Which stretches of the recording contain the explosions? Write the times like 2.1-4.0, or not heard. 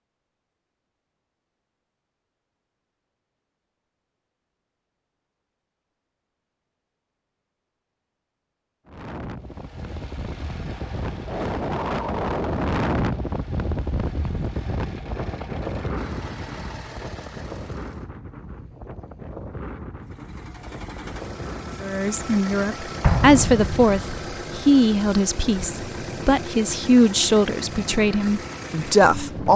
23.0-24.2.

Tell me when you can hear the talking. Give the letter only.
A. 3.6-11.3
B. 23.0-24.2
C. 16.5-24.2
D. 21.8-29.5
D.